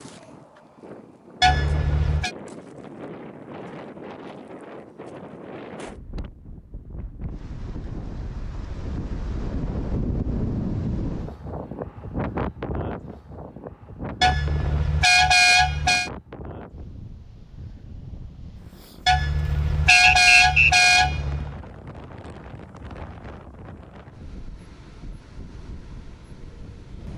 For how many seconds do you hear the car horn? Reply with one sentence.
The car horn can be heard for 5 seconds in total.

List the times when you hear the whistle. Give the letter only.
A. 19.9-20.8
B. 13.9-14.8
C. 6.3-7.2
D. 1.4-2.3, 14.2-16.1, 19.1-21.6
A.